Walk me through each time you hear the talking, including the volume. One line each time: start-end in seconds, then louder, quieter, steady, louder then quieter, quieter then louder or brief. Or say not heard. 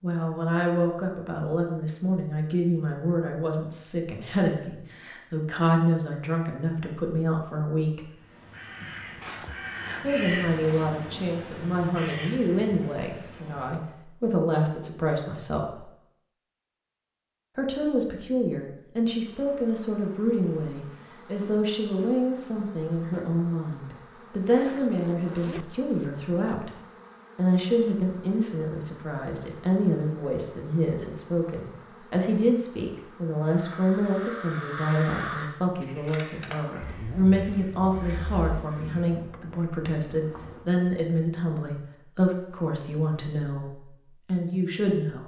0.0-8.1 steady
10.0-15.8 steady
17.6-26.7 steady
27.4-45.2 steady.